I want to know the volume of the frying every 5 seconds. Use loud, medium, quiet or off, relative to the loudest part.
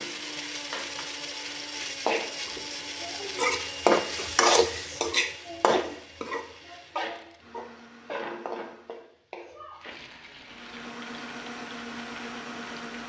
loud, medium, quiet.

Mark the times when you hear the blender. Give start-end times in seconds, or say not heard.
0.0-9.1, 10.4-13.0.